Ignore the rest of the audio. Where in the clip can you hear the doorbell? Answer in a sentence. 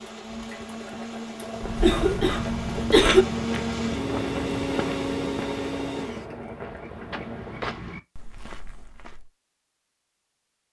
The doorbell can't be heard in this clip.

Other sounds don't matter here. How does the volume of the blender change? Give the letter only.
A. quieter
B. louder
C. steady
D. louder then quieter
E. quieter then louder
B.